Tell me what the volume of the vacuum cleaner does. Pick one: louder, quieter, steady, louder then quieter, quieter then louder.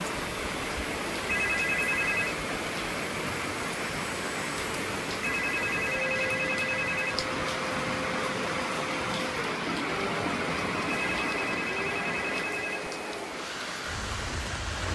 steady.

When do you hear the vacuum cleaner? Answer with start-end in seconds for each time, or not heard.
0.0-14.9.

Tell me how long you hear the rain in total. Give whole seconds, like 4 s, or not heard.
15 s.